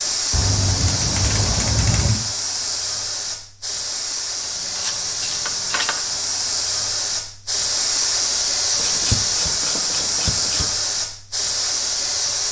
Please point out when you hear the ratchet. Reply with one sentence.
You can hear the ratchet from 0.3 to 2.2 s, from 4.4 to 6.0 s and from 8.8 to 10.7 s.